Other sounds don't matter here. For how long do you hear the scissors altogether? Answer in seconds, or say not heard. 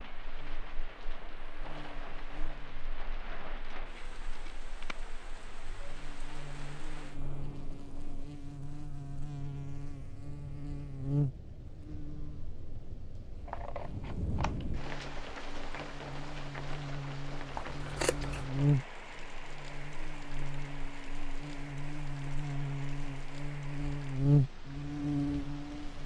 4 s.